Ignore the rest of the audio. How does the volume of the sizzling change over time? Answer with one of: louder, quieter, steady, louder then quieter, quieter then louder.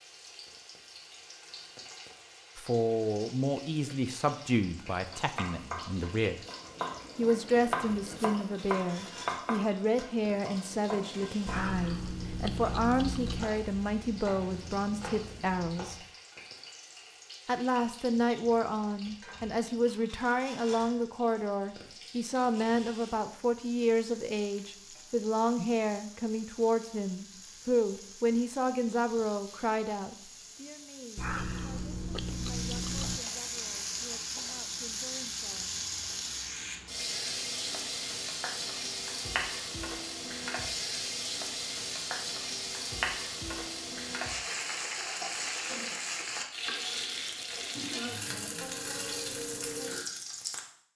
louder.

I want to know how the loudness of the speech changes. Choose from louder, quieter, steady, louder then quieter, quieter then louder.
quieter.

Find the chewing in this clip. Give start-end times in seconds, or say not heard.
11.4-13.5, 31.1-33.2.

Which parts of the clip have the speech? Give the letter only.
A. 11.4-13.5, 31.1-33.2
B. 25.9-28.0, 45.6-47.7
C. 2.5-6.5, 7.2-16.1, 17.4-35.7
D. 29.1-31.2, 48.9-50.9
C.